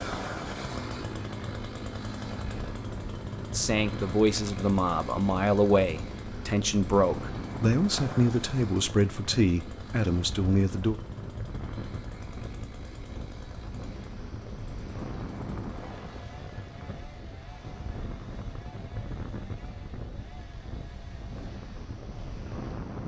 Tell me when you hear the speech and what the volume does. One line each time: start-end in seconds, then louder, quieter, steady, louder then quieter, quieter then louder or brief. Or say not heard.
3.5-10.9 steady.